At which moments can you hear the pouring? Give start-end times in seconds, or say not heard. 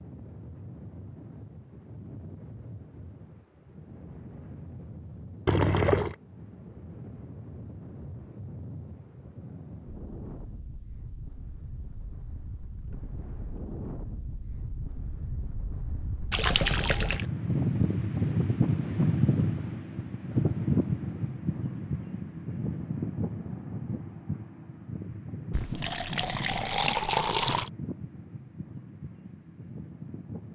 5.5-6.2, 16.3-17.2, 25.5-27.7.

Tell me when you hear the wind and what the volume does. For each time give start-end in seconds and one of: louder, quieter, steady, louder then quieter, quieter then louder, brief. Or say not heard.
0.0-30.5 louder then quieter.